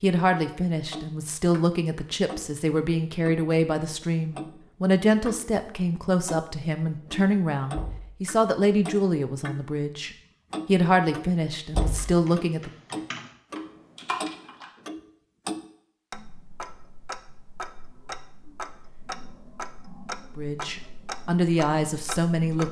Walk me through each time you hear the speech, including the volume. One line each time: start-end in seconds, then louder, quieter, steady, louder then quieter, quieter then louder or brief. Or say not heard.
0.0-12.7 steady
20.4-22.6 brief.